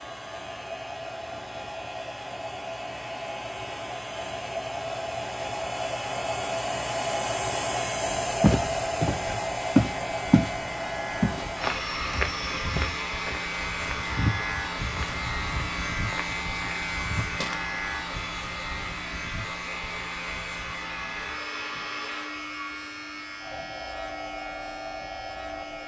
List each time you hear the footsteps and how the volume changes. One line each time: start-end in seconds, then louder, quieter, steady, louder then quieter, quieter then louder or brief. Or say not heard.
8.4-10.6 brief
11.2-17.6 quieter.